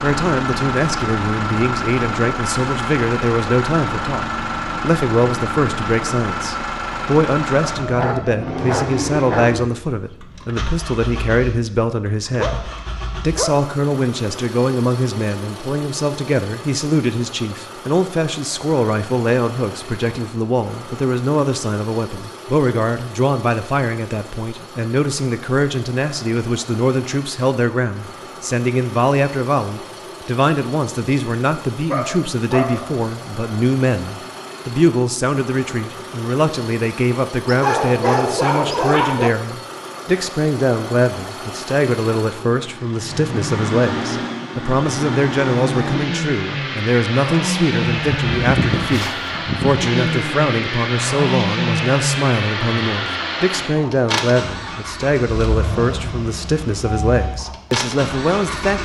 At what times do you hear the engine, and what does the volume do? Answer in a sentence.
You can hear the engine from 0.0 to 58.8 s, getting quieter then louder.